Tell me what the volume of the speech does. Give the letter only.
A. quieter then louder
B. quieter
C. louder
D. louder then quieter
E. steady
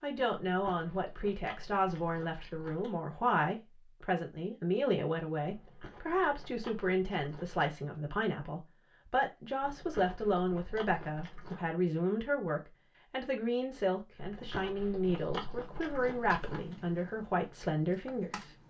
E.